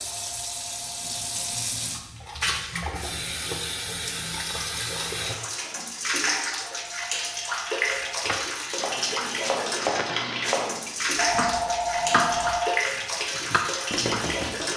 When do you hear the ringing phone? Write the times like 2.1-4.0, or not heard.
0.0-1.6, 6.7-8.2, 11.2-12.7.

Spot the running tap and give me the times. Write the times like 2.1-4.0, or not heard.
0.0-14.7.